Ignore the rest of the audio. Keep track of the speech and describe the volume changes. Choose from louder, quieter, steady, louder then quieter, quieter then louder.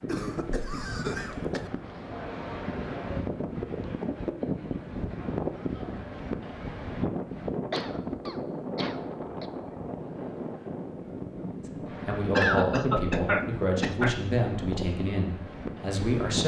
quieter.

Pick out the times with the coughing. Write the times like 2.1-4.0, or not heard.
0.1-1.7, 7.7-9.4, 12.3-14.2.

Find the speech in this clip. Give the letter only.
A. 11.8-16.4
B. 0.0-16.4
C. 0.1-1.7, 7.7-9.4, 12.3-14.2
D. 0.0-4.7
A.